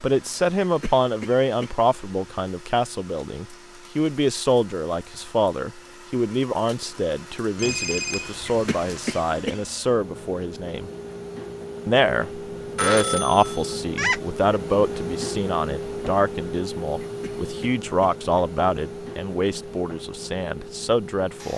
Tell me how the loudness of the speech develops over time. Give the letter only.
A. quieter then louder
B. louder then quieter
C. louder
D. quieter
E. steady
E.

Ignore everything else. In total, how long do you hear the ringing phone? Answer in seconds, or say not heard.
3 s.